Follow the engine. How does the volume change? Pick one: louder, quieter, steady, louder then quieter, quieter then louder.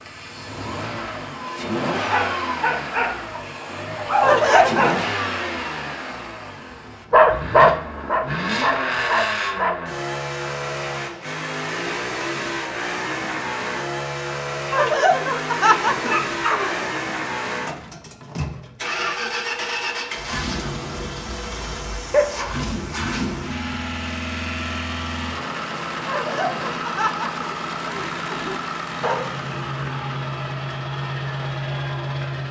steady.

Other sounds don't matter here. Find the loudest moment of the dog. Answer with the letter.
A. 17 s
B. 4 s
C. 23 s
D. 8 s
D.